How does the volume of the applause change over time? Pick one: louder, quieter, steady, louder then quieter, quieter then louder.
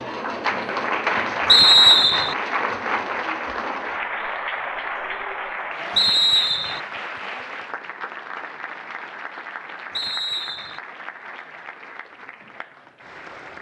quieter.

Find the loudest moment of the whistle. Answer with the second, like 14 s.
2 s.